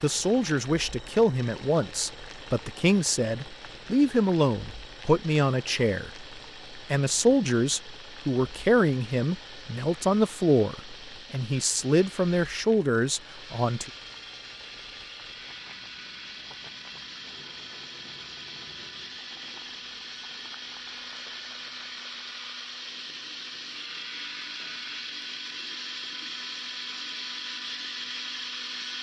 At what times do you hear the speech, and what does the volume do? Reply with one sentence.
You can hear the speech from 0.0 to 13.9 s, at a steady volume.